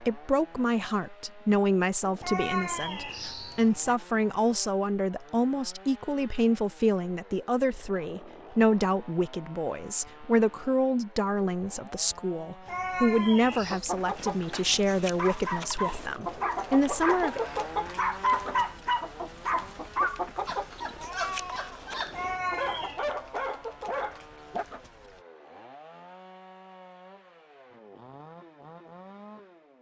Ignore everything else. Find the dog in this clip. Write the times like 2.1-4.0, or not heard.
14.5-24.6.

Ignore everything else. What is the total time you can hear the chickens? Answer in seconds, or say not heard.
12 s.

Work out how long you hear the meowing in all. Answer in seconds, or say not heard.
4 s.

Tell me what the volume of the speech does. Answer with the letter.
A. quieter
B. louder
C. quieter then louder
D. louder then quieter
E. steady
E.